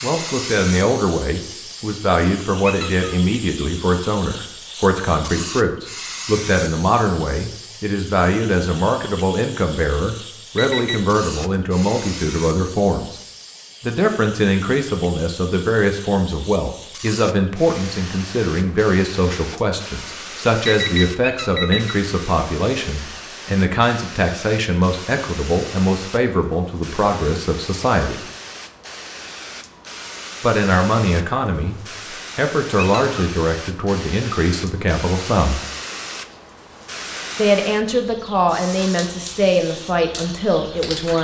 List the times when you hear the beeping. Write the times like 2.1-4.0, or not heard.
10.6-11.2, 20.6-21.9.